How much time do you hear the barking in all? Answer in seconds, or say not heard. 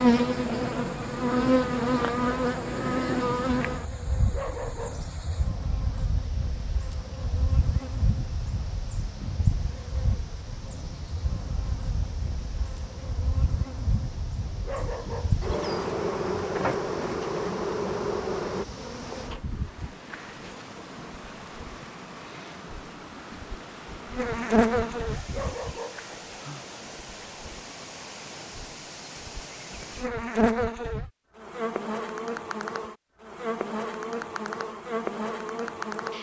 2 s.